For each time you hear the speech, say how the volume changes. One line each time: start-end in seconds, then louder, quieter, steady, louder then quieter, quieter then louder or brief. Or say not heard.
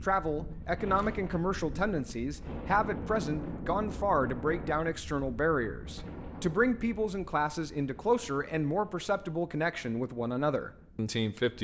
0.0-11.5 steady.